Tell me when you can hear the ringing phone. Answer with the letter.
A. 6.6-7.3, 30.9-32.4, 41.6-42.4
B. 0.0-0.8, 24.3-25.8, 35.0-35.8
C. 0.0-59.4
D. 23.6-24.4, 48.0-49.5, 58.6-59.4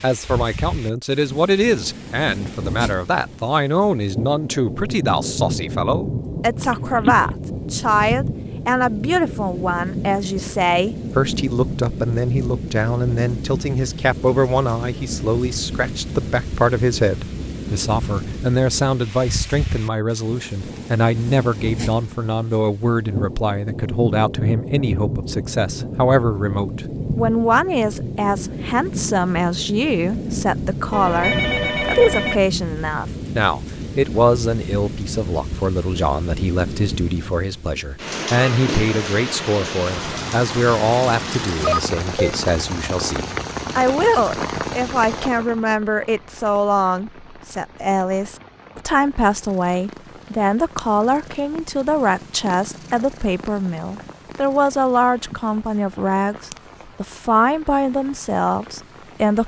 A.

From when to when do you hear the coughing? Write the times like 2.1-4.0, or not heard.
not heard.